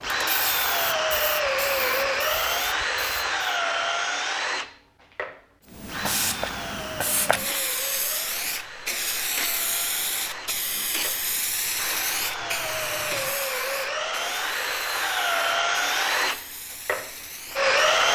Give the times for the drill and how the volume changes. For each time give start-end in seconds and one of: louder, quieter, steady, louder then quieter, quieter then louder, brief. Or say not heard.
0.0-18.1 quieter then louder.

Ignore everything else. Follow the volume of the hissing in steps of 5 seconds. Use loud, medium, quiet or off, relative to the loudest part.
medium, loud, loud, medium.